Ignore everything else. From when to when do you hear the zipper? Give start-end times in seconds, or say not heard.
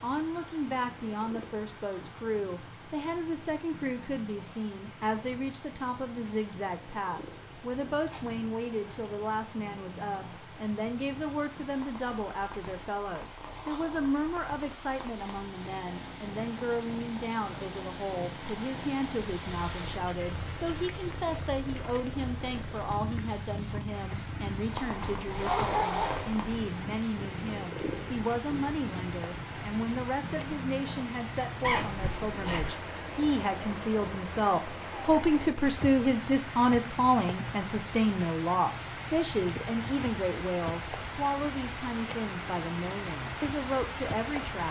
7.7-8.4, 25.3-26.4, 31.6-32.7.